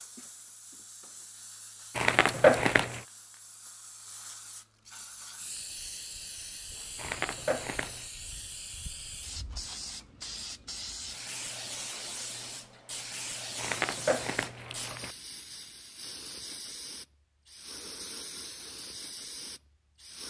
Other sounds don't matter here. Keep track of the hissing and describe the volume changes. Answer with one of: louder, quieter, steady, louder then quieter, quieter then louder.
louder.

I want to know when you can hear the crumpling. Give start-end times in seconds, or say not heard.
1.9-3.0, 7.0-8.1, 13.6-15.2.